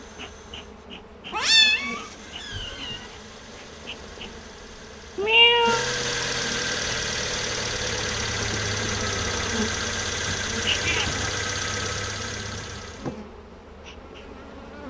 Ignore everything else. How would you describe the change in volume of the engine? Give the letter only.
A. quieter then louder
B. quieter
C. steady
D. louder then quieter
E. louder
E.